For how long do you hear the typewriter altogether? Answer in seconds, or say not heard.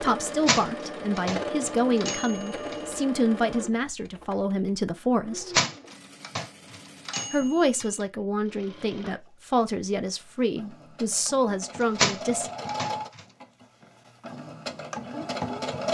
7 s.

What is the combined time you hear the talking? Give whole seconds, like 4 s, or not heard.
11 s.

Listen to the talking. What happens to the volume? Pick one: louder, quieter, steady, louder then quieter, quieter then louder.
steady.